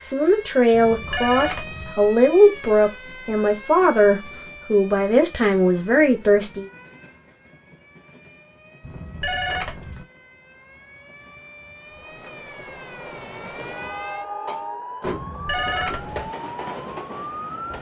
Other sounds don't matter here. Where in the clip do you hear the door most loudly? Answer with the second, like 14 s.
15 s.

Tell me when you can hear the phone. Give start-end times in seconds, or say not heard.
0.7-1.9, 8.8-10.1, 15.1-16.3.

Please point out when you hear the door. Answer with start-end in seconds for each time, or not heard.
13.8-15.4.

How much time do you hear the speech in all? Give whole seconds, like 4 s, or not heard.
7 s.